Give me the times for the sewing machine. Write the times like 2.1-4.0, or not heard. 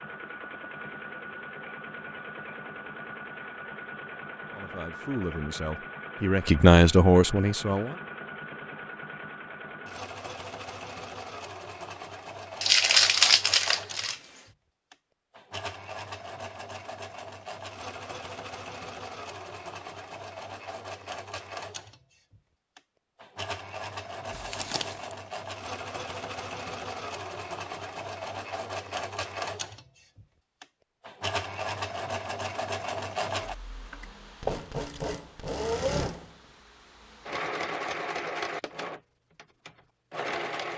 0.0-40.7.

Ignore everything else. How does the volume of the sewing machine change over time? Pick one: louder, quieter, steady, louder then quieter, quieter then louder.
louder.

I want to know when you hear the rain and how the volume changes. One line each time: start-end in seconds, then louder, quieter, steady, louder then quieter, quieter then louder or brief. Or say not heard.
not heard.